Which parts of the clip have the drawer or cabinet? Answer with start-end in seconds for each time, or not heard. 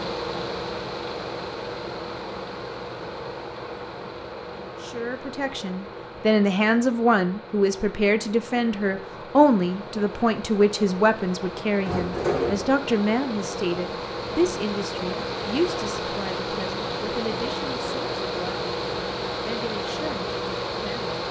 11.8-12.7.